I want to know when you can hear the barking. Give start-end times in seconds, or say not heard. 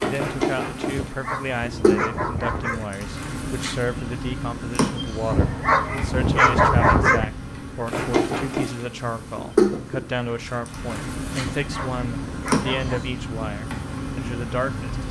0.8-2.9, 5.2-7.2, 11.3-13.0.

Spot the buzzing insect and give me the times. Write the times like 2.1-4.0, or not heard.
0.0-15.0.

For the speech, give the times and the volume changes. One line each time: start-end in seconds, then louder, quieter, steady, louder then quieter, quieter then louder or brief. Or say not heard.
0.0-15.0 steady.